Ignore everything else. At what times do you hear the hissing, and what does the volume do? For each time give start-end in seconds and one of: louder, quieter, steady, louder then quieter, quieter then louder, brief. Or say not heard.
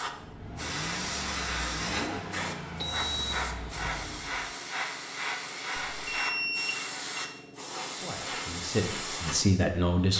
0.0-10.1 steady.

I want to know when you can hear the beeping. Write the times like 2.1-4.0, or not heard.
2.8-3.5, 6.0-7.3.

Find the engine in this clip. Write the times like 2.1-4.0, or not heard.
0.0-4.5.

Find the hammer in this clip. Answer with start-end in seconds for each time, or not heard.
not heard.